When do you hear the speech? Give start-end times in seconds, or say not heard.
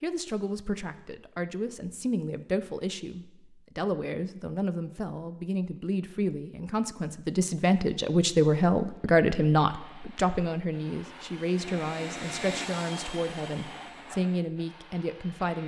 0.0-15.6.